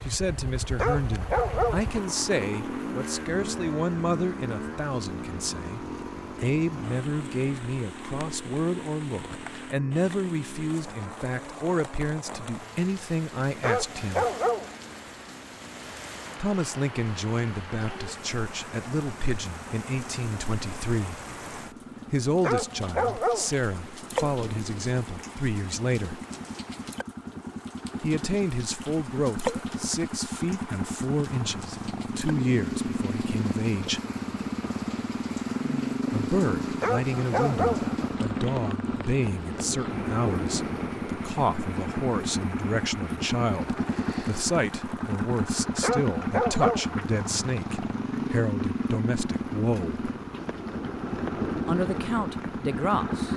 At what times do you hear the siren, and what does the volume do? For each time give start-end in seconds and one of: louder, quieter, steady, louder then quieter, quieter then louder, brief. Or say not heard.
not heard.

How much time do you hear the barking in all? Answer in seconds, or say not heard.
6 s.